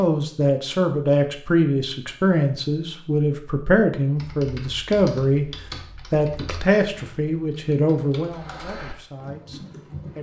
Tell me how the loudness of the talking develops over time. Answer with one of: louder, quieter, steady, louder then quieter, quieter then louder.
quieter.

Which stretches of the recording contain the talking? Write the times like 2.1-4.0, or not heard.
0.0-5.5, 6.1-10.1.